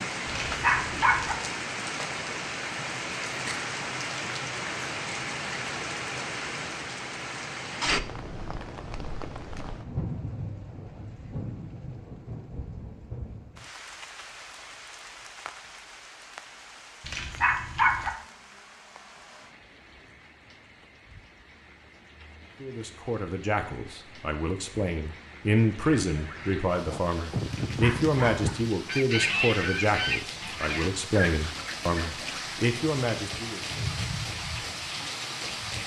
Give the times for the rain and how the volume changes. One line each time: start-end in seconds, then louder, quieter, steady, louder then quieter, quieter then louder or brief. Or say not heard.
0.0-35.8 quieter then louder.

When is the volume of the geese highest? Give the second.
29 s.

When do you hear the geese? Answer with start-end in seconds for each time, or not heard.
25.7-32.6.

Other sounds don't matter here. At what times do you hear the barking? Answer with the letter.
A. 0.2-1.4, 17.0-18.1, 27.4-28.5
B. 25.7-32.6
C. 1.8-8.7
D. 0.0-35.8
A.